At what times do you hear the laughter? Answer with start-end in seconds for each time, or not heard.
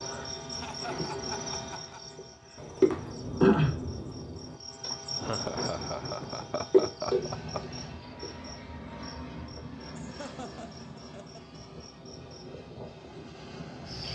0.5-2.0, 5.2-7.8, 9.9-11.6.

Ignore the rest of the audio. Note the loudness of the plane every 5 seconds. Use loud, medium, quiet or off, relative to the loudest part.
off, loud, loud.